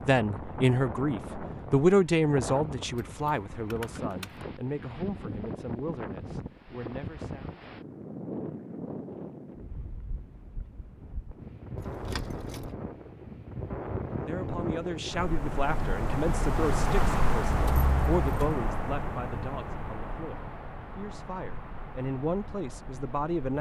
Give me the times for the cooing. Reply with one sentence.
The cooing can't be heard in this clip.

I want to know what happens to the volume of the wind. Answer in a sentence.
The volume of the wind goes up, then down.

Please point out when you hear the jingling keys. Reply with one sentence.
The jingling keys can be heard from 3.0 to 4.5 s, from 11.8 to 12.7 s and from 17.4 to 18.6 s.